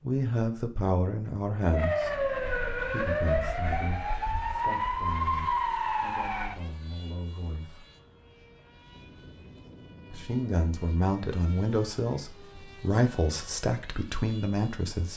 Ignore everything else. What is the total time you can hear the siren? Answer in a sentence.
The siren can be heard for 5 seconds in total.